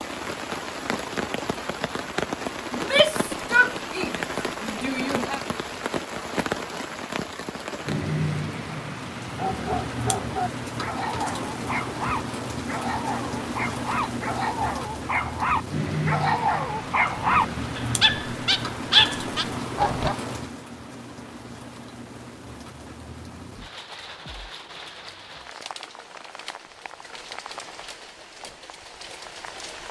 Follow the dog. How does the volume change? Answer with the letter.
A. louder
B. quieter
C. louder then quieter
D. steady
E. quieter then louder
A.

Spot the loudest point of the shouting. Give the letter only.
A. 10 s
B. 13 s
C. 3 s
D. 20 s
C.